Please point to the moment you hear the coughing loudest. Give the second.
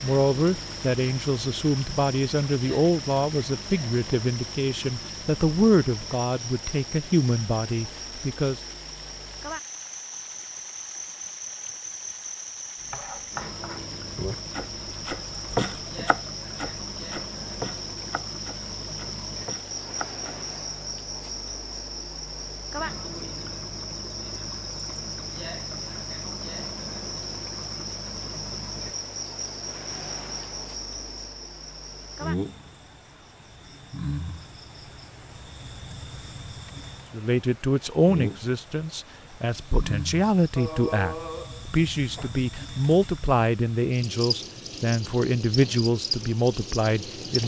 41 s.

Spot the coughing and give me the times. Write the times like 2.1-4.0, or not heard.
40.5-42.4.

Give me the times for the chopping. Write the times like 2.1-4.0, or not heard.
12.8-20.2.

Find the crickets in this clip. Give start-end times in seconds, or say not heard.
0.0-47.4.